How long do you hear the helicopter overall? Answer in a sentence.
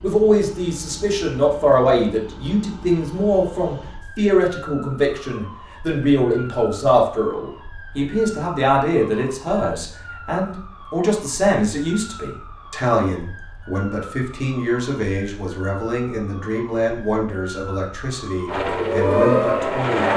You can hear the helicopter for 2 seconds altogether.